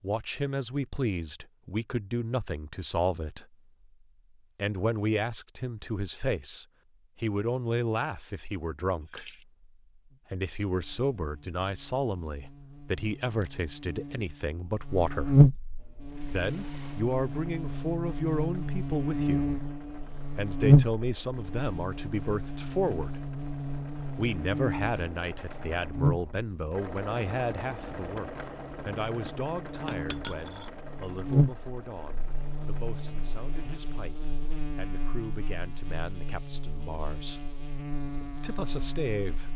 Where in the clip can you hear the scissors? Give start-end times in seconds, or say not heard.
not heard.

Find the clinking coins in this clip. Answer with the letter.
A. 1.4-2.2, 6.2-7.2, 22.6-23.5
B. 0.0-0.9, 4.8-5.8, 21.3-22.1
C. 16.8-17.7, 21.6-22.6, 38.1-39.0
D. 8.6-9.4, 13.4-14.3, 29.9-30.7
D.